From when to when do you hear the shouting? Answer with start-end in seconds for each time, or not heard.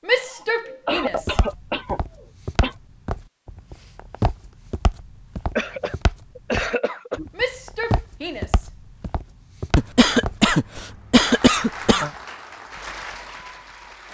0.1-1.4, 7.3-8.7.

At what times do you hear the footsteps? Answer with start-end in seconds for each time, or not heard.
1.0-10.8.